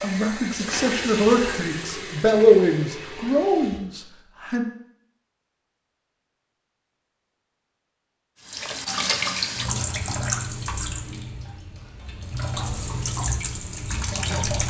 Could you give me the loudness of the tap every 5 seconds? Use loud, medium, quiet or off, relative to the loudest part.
medium, loud, loud.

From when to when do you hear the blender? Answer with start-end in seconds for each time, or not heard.
not heard.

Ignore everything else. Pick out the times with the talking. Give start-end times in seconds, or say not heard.
0.0-4.7.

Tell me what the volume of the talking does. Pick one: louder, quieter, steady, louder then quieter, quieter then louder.
louder then quieter.